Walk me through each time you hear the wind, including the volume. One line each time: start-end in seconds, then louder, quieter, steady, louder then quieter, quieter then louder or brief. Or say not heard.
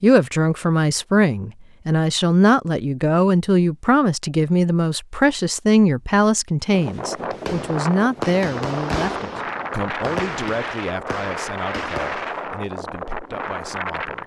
6.7-14.2 steady.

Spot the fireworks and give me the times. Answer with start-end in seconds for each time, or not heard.
7.3-12.4.